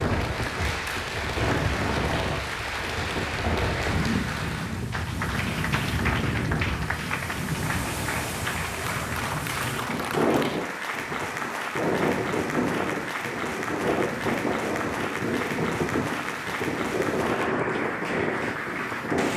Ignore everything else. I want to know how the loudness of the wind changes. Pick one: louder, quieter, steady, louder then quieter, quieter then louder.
steady.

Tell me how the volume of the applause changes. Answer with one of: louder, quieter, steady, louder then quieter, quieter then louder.
steady.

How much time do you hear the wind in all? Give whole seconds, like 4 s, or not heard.
19 s.